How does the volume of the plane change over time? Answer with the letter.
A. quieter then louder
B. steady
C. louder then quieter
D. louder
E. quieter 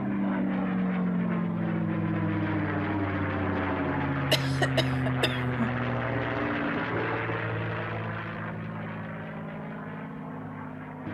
E.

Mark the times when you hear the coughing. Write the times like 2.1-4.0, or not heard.
4.3-5.7.